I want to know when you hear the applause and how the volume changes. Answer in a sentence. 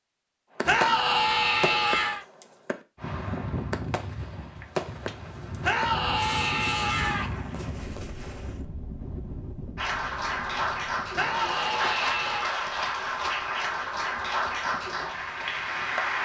The applause can be heard from 9.8 to 16.2 s, at a steady volume.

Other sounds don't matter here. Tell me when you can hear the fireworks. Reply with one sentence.
You can hear the fireworks from 0.6 to 8.7 s.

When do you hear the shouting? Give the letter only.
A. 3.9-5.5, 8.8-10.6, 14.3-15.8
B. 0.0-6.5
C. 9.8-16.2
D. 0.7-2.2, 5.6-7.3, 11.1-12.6
D.